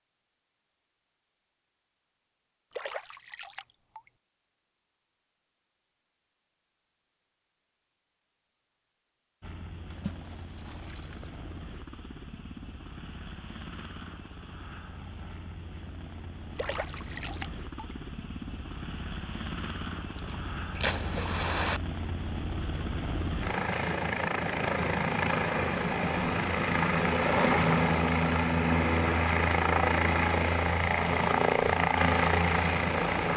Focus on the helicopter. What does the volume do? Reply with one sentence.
The volume of the helicopter goes up.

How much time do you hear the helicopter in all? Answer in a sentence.
You can hear the helicopter for 24 seconds altogether.